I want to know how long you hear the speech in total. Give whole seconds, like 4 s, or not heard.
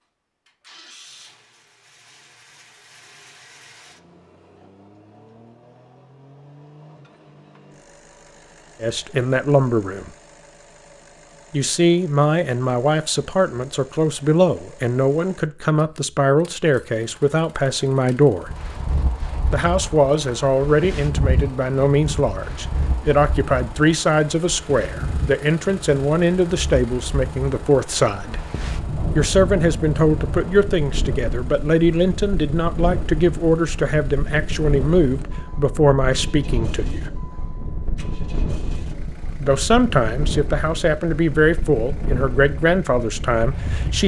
30 s.